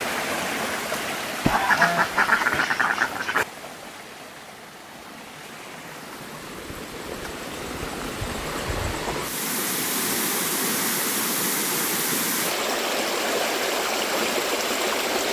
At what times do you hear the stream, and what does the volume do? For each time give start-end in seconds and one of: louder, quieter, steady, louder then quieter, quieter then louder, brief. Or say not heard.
0.0-15.2 quieter then louder.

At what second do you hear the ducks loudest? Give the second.
2 s.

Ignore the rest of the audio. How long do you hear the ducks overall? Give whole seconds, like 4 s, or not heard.
2 s.